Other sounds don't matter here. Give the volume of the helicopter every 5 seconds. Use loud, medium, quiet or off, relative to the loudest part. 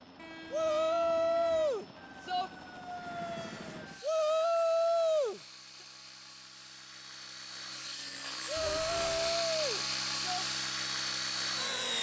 quiet, medium, loud.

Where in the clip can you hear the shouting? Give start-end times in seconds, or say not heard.
0.5-2.5, 4.0-5.4, 8.4-10.4.